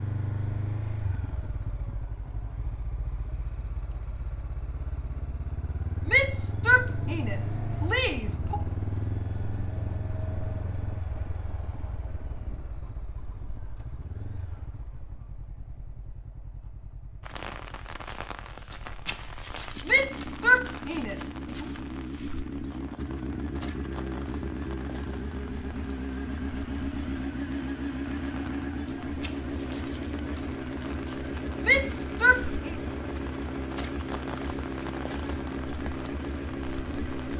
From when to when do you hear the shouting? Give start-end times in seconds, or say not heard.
6.0-8.6, 19.9-21.6, 31.6-32.8.